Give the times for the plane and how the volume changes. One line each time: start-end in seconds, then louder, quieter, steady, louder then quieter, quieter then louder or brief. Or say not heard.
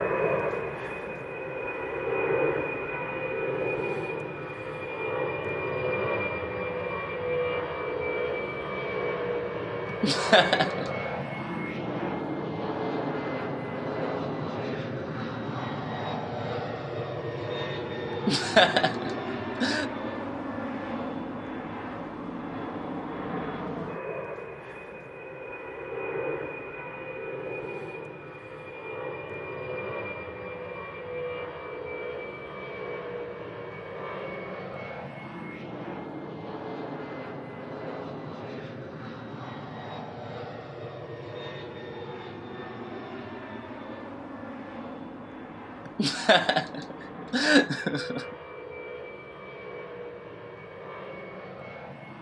0.0-52.1 quieter.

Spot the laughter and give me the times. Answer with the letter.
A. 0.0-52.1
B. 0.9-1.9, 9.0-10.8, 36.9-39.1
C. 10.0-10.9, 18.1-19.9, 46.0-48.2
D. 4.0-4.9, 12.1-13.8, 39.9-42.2
C.